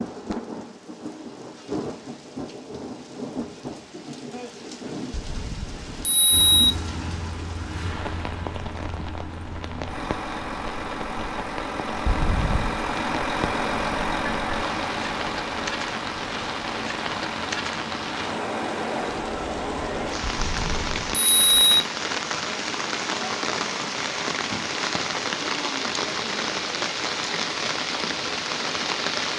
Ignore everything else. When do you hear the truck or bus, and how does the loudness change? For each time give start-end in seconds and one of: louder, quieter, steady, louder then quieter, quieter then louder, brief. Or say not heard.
6.3-21.1 louder then quieter.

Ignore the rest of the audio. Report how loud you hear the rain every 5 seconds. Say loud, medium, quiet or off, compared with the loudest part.
medium, medium, medium, loud, loud, loud.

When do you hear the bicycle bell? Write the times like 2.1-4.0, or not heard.
5.1-6.8, 12.1-12.8, 20.2-21.8.